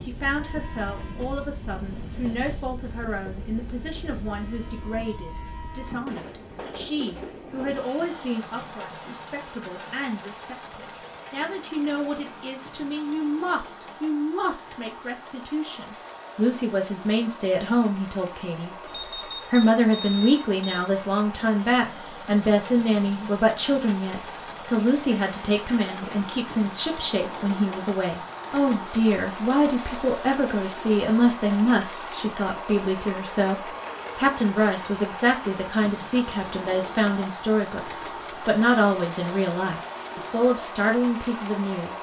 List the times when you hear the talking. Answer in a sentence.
The talking can be heard from 0.0 to 18.7 s and from 19.5 to 41.9 s.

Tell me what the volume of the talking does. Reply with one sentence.
The volume of the talking goes up.